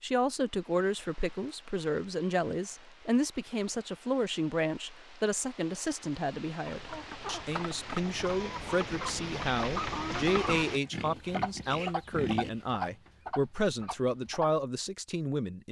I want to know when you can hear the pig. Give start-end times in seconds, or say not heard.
10.7-12.5.